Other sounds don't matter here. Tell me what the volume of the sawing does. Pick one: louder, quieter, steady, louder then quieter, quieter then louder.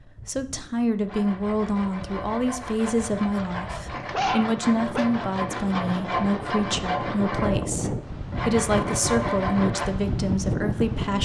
louder.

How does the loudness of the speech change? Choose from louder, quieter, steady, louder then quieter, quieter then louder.
steady.